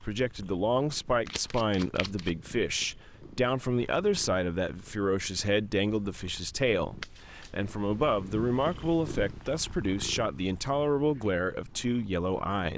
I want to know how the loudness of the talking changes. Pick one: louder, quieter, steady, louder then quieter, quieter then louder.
steady.